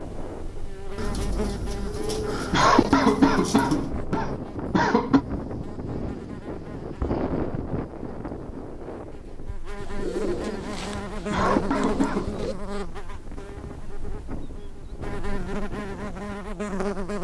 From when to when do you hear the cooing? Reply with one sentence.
You can hear the cooing from 0.9 to 3.9 s and from 9.8 to 12.6 s.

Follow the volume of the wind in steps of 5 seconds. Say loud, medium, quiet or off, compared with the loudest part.
loud, loud, medium, medium.